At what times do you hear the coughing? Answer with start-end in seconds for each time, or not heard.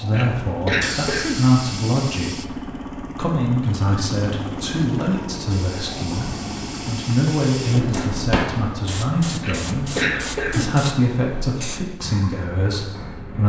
0.1-1.4, 9.4-10.8.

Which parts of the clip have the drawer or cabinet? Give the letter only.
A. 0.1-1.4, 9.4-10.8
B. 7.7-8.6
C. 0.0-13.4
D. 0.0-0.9
B.